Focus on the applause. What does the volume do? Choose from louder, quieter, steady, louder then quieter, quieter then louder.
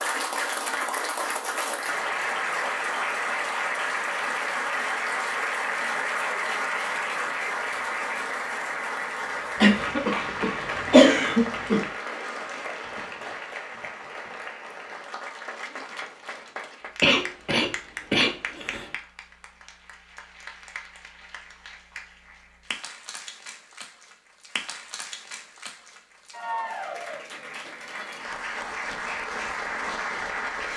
quieter then louder.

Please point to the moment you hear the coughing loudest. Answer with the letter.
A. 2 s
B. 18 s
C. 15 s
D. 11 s
D.